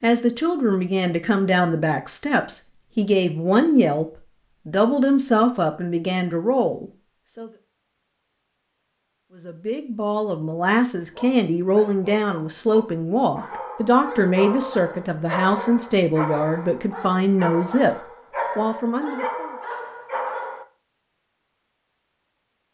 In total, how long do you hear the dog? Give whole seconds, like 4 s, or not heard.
10 s.